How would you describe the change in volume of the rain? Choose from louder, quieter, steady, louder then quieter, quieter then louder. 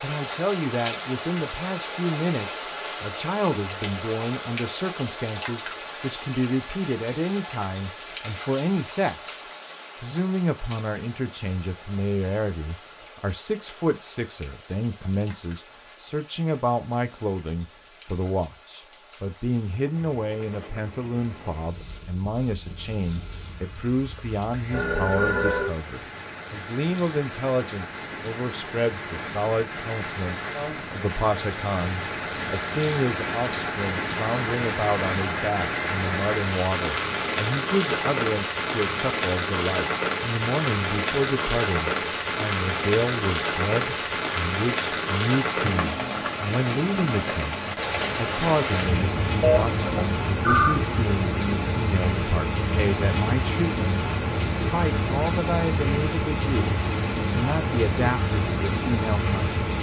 quieter then louder.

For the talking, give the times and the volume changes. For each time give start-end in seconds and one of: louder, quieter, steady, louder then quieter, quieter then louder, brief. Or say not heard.
0.0-59.7 steady.